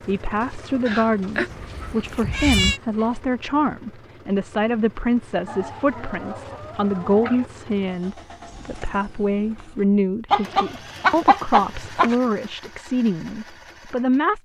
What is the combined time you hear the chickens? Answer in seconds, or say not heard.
7 s.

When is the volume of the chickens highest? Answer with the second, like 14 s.
11 s.